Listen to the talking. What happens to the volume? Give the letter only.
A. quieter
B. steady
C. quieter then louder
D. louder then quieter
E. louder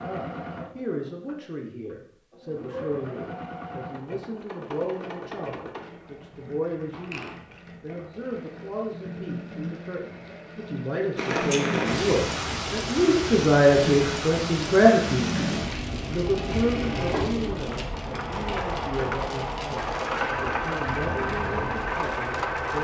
D.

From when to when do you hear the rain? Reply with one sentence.
You can hear the rain from 11.2 to 22.7 s.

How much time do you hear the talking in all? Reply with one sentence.
The talking can be heard for 23 seconds in total.